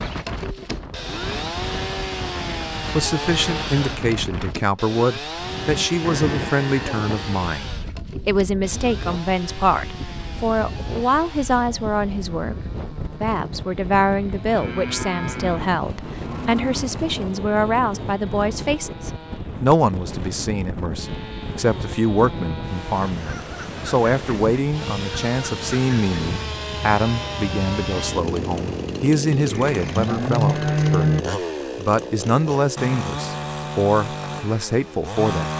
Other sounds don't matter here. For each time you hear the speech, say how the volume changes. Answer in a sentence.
The speech can be heard from 2.8 to 35.5 s, at a steady volume.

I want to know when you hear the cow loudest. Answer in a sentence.
The loudest moment of the cow is at 31 seconds.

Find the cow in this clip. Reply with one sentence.
You can hear the cow from 6.0 to 7.1 s, from 14.3 to 16.9 s and from 29.3 to 31.2 s.